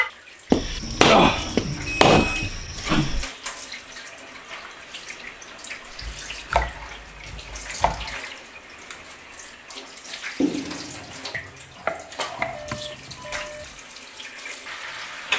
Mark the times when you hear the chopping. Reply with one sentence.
The chopping can be heard from 0.5 to 3.2 s, from 6.0 to 8.2 s and from 10.4 to 13.2 s.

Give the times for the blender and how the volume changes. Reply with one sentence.
The blender can't be heard in this clip.